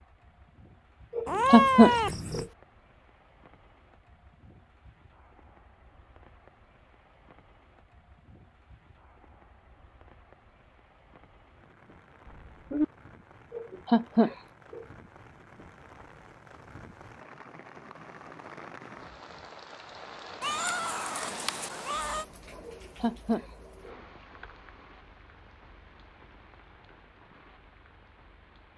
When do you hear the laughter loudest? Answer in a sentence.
The loudest moment of the laughter is at 2 seconds.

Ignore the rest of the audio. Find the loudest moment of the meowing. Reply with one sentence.
The volume of the meowing peaks at 2 seconds.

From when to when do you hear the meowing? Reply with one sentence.
The meowing can be heard from 1.2 to 2.5 s, from 12.2 to 12.8 s and from 20.4 to 22.2 s.